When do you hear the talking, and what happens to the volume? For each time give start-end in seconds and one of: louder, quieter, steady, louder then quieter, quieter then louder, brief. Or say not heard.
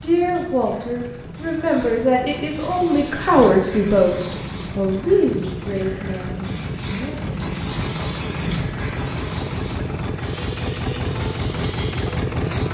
0.0-7.4 louder then quieter.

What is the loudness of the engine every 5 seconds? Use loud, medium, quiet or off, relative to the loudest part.
quiet, medium, loud.